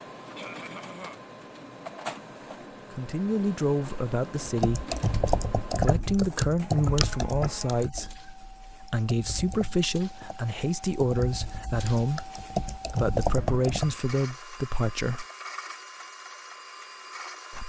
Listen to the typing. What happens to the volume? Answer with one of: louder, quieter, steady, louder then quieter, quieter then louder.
quieter then louder.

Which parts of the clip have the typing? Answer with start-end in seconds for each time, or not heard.
4.4-13.9.